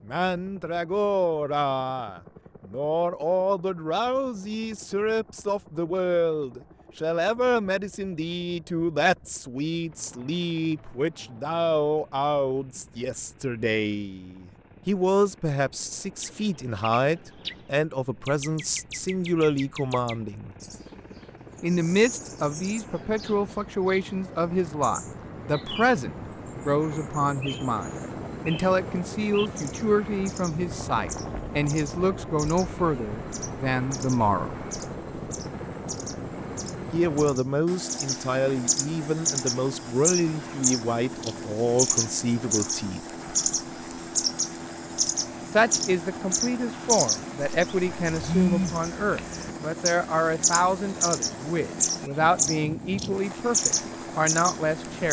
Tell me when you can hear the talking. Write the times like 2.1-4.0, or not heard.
0.1-20.6, 21.6-34.5, 36.9-43.0, 45.5-55.0.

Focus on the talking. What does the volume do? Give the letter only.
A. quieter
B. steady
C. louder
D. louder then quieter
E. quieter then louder
B.